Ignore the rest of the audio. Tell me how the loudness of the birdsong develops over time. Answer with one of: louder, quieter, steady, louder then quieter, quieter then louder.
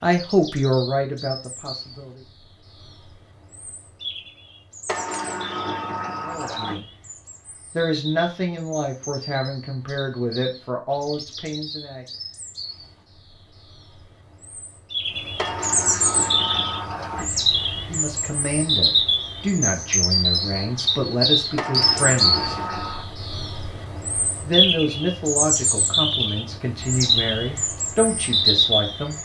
louder.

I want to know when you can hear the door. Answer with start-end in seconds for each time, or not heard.
4.8-6.8, 15.3-17.3, 21.6-23.1.